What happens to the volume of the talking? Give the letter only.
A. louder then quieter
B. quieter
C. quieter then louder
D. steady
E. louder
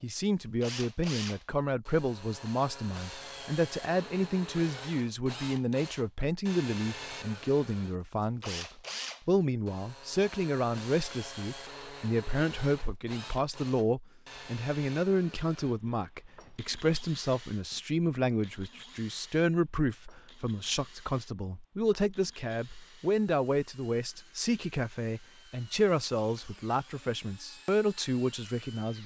D.